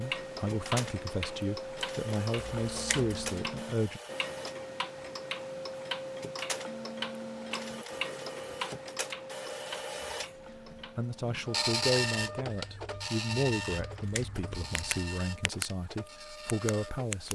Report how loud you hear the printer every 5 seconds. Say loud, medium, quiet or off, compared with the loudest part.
medium, medium, loud, medium.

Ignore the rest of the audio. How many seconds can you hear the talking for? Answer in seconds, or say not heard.
10 s.